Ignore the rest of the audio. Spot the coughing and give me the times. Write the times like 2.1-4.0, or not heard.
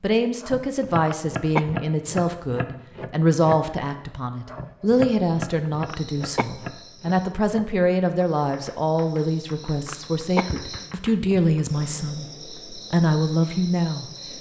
0.8-1.8, 5.7-6.5, 9.8-11.3.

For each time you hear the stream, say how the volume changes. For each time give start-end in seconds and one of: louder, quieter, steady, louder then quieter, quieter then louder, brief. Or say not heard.
not heard.